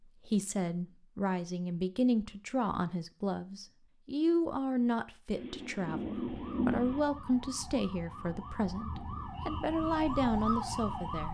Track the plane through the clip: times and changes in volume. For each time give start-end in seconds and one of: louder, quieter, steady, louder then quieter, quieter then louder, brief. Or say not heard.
not heard.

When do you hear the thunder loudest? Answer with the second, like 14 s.
7 s.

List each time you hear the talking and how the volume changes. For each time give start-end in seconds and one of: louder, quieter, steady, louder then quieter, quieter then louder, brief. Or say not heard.
0.2-11.2 steady.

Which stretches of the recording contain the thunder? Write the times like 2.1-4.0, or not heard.
5.3-7.0.